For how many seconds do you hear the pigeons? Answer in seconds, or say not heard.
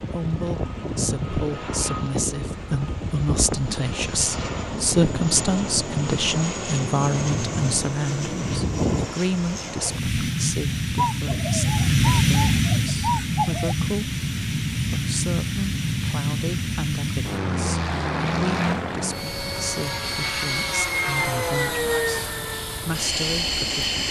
3 s.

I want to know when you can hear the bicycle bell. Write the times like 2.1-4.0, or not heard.
not heard.